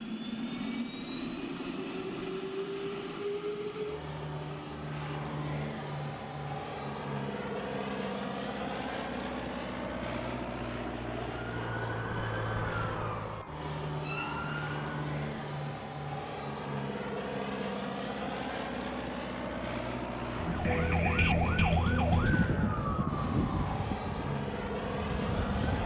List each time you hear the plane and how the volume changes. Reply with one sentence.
The plane can be heard from 0.0 to 25.8 s, at a steady volume.